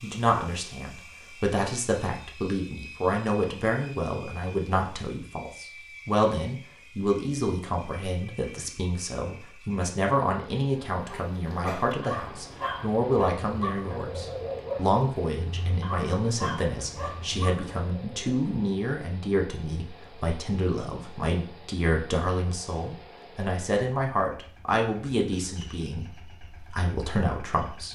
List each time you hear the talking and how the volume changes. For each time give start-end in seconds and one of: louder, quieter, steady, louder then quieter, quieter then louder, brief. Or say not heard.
0.0-27.9 steady.